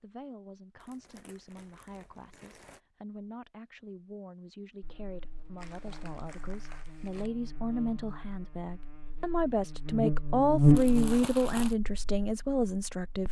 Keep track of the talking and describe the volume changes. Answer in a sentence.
The loudness of the talking goes up.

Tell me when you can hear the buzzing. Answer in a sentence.
You can hear the buzzing from 4.8 to 13.2 s.